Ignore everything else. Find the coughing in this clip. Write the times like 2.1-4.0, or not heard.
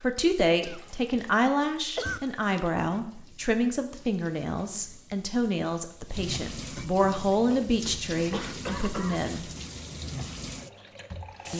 0.6-1.2, 1.9-2.6, 7.8-9.3.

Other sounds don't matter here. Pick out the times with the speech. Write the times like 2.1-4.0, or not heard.
0.0-9.5.